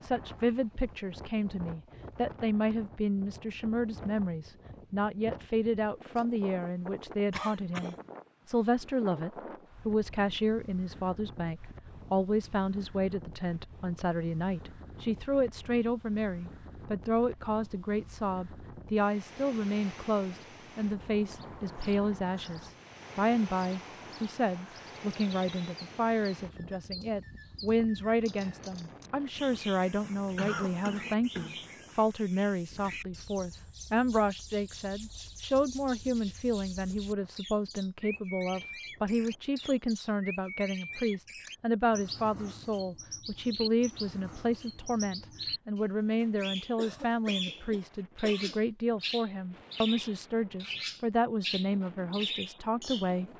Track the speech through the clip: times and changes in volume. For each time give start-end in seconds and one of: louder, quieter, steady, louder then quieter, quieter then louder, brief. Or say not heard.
0.0-53.3 steady.